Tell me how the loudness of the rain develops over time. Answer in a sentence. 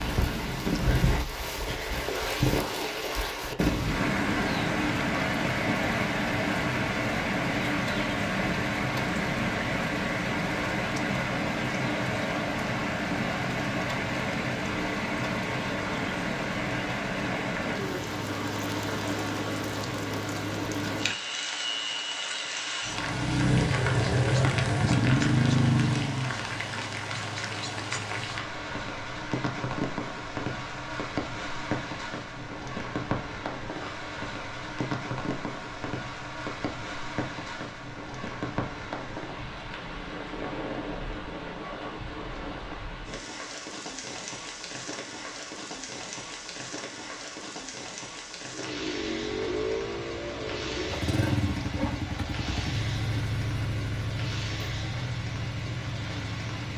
The loudness of the rain goes down.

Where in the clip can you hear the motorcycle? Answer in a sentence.
The motorcycle can be heard from 23.0 to 26.4 s and from 48.5 to 56.7 s.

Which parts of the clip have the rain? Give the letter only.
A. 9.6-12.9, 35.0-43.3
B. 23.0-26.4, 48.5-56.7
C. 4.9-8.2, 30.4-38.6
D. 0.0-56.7
D.